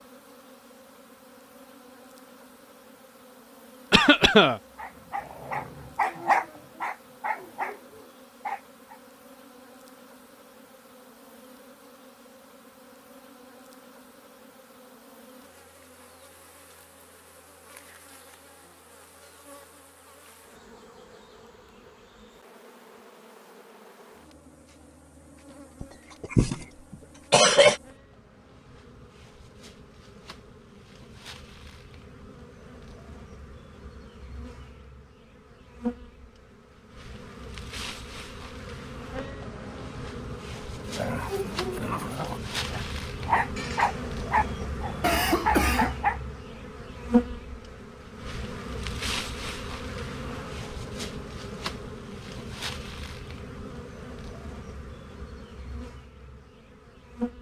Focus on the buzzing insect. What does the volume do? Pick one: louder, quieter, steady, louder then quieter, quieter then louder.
louder.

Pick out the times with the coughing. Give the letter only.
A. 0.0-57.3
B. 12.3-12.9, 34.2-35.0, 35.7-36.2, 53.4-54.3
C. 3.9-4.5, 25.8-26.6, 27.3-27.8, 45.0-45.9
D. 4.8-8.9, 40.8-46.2
C.